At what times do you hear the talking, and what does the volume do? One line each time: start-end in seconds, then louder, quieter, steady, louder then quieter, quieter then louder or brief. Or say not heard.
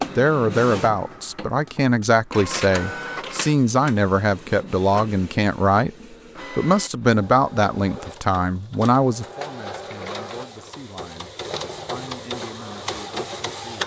0.1-13.8 quieter.